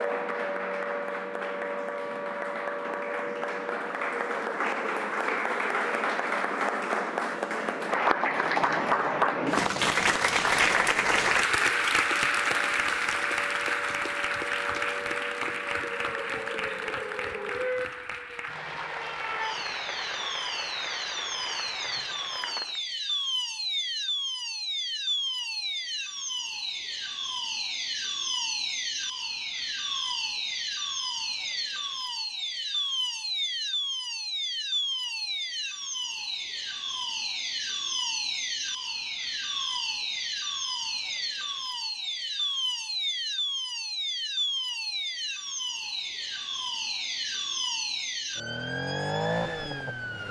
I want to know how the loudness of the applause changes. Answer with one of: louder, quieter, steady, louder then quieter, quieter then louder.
louder then quieter.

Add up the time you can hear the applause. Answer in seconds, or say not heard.
23 s.